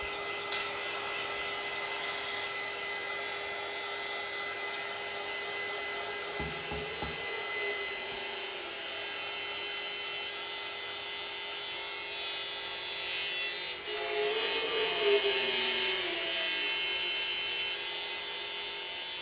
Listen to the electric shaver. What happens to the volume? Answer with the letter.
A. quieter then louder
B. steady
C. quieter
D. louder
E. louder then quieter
D.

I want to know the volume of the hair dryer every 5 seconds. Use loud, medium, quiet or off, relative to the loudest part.
loud, loud, medium, medium.